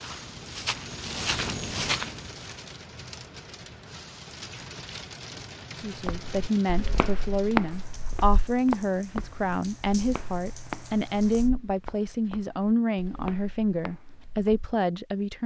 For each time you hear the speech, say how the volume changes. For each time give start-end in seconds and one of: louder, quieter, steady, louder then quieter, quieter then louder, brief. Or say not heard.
5.8-15.4 steady.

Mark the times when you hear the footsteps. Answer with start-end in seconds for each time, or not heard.
0.0-2.5, 6.0-14.7.